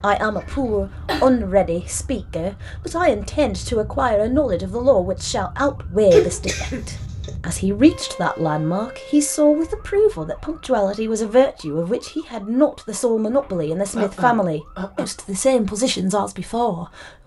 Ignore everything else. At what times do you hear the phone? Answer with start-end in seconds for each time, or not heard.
not heard.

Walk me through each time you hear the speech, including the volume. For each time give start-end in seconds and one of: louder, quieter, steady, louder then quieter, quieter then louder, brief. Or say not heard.
0.0-17.2 steady.